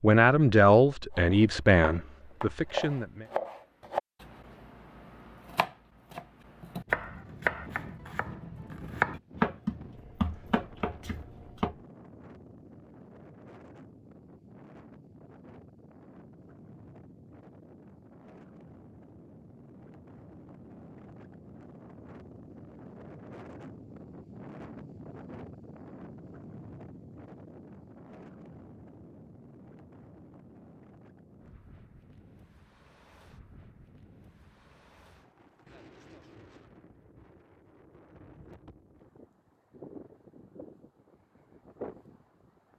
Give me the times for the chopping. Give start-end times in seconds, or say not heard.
1.1-11.8.